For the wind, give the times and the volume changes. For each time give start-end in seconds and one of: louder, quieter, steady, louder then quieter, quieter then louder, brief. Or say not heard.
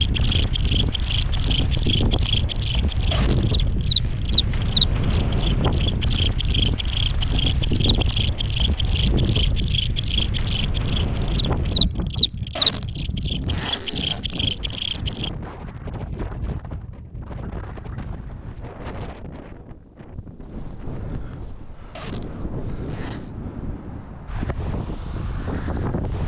0.0-26.2 quieter.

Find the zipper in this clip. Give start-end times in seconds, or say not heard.
3.1-4.2, 12.6-14.6, 21.9-23.3.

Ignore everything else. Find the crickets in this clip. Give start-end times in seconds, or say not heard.
0.0-15.3.